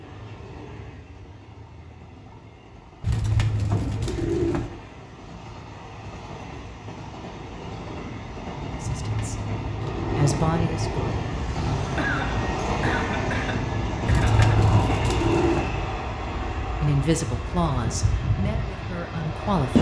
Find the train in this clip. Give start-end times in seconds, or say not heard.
0.0-19.7.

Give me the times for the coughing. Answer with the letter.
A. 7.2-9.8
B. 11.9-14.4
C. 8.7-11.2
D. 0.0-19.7
B.